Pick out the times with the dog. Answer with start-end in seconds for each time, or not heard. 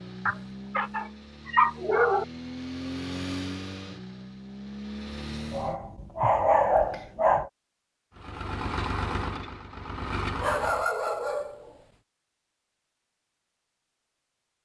0.2-2.2, 5.5-7.5, 10.3-11.8.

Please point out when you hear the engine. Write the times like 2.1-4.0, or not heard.
0.0-5.8, 8.2-10.9.